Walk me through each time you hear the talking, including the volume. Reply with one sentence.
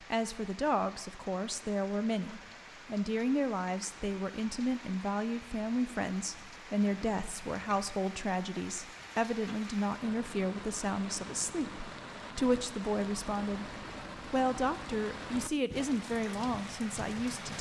You can hear the talking from 0.1 to 17.5 s, at a steady volume.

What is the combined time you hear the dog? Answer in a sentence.
You can't hear the dog here.